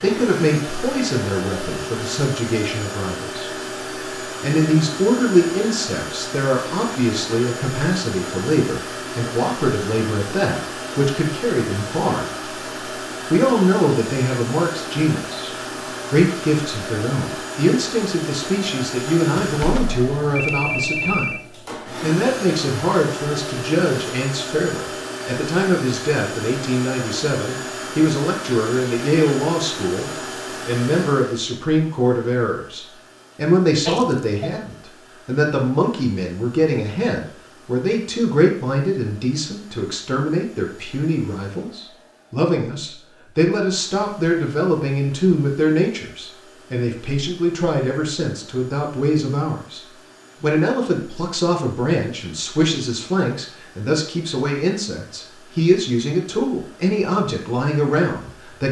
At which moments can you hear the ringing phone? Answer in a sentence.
You can hear the ringing phone from 19.4 to 21.4 s and from 33.9 to 34.5 s.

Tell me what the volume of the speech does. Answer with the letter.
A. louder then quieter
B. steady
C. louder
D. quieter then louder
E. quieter
B.